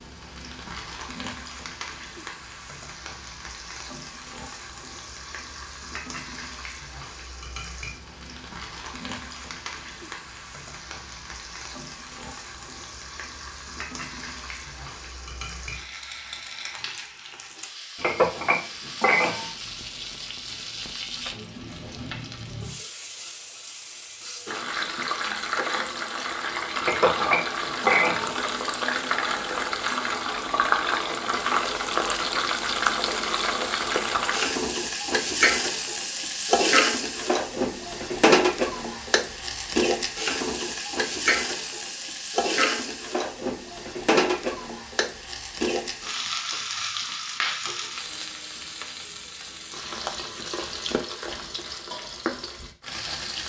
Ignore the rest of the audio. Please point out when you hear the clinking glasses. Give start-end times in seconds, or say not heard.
18.0-19.5, 26.8-28.4.